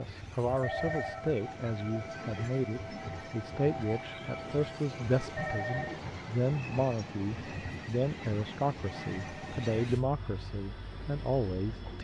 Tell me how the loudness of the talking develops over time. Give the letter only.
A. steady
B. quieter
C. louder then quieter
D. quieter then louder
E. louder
A.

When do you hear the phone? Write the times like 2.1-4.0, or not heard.
0.6-1.2, 5.3-6.0, 8.8-9.7.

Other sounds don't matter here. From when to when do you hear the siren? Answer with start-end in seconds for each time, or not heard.
not heard.